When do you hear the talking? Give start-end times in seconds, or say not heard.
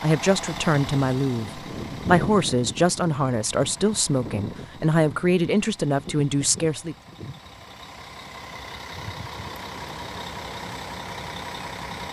0.0-7.0.